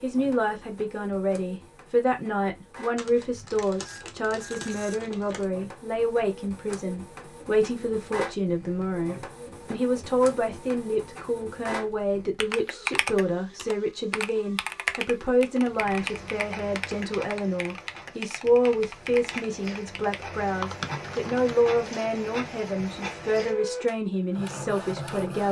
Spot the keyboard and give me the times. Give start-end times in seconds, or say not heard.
12.4-21.6.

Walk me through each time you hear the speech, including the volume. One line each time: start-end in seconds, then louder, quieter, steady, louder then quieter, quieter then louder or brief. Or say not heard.
0.0-25.4 steady.